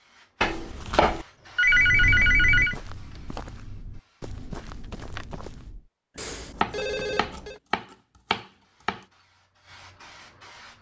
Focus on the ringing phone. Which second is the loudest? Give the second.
2 s.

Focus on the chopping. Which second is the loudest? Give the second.
1 s.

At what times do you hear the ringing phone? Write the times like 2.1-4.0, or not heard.
1.1-2.8, 6.2-7.6.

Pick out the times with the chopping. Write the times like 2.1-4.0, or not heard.
0.4-1.2, 6.6-9.0.